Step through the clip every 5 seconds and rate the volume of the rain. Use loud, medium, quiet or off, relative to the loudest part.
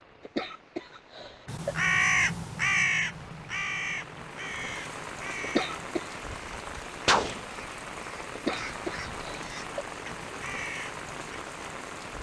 medium, loud, loud.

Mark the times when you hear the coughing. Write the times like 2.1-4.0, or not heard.
0.2-1.8, 5.4-6.0, 8.3-9.8.